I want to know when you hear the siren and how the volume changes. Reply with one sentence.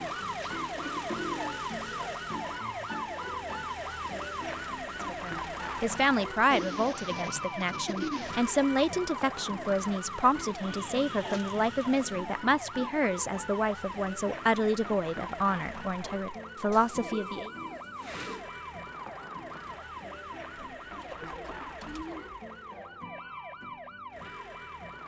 You can hear the siren from 0.0 to 25.0 s, getting quieter.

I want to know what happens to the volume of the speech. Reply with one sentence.
The loudness of the speech stays about the same.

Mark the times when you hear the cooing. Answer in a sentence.
You can hear the cooing from 0.4 to 2.2 s, from 6.5 to 8.4 s, from 10.6 to 12.2 s, from 16.7 to 18.4 s and from 20.6 to 22.4 s.